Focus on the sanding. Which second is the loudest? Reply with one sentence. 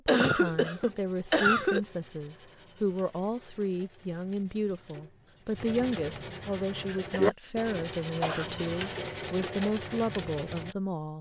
The volume of the sanding peaks at 7 seconds.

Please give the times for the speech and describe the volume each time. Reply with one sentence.
You can hear the speech from 0.1 to 11.1 s, at a steady volume.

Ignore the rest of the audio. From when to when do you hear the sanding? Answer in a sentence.
You can hear the sanding from 0.3 to 10.8 s.